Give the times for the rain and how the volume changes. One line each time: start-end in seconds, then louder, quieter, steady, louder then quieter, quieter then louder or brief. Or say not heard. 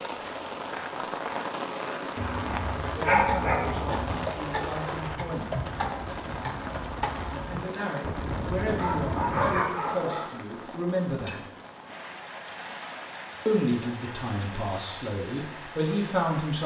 0.0-16.6 quieter.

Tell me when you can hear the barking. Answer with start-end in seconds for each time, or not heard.
2.1-4.2, 8.8-10.2.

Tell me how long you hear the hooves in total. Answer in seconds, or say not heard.
7 s.